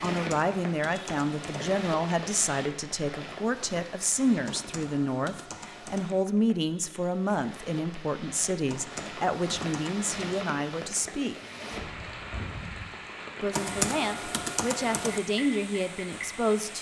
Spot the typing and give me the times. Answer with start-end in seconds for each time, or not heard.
0.1-1.6, 4.5-6.2, 8.7-10.1, 13.5-15.2.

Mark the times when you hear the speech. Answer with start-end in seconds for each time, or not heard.
0.0-11.3, 13.4-16.7.